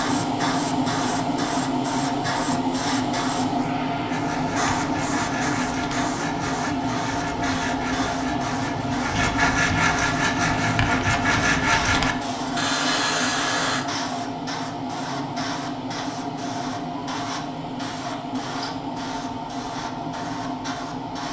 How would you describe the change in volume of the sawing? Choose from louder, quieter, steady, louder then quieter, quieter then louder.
louder.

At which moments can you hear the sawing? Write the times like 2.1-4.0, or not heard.
4.0-13.8.